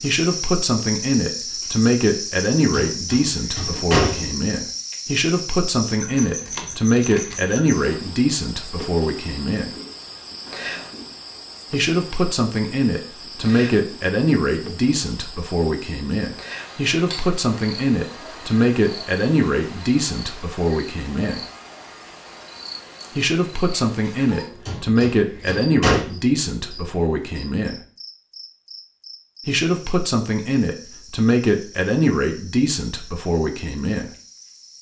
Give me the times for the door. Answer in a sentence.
The door can be heard from 2.7 to 4.3 s and from 24.6 to 26.1 s.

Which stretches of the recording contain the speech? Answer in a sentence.
You can hear the speech from 0.0 to 9.7 s, from 11.7 to 21.4 s, from 23.1 to 27.8 s and from 29.4 to 34.1 s.